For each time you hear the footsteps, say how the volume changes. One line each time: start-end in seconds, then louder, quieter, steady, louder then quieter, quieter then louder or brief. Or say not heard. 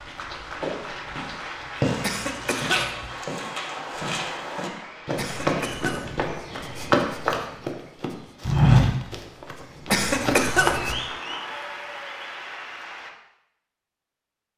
0.5-10.9 louder.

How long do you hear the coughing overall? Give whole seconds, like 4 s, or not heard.
3 s.